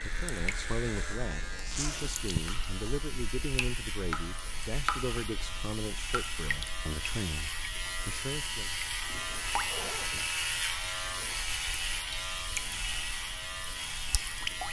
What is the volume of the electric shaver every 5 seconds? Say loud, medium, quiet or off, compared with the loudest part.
medium, loud, loud.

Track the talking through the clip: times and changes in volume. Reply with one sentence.
The talking can be heard from 0.0 to 8.7 s, at a steady volume.